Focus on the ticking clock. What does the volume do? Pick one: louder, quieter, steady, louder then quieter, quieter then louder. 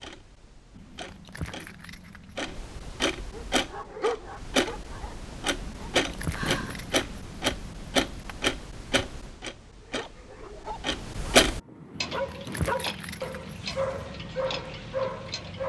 louder then quieter.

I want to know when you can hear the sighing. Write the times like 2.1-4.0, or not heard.
6.3-6.9.